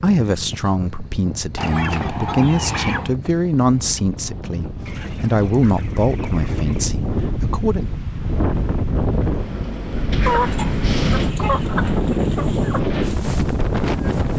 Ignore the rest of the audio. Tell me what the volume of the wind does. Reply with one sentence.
The loudness of the wind goes up.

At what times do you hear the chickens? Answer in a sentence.
You can hear the chickens from 1.6 to 3.1 s, from 4.8 to 6.8 s and from 10.2 to 12.8 s.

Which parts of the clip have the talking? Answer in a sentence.
You can hear the talking from 0.0 to 8.0 s.